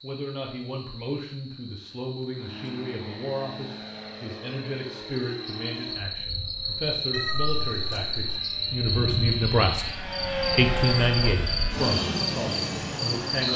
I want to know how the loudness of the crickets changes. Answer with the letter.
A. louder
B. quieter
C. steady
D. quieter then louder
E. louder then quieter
A.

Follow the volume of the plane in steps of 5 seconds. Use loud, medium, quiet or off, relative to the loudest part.
medium, medium, loud.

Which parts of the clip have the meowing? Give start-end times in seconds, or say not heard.
7.1-8.4.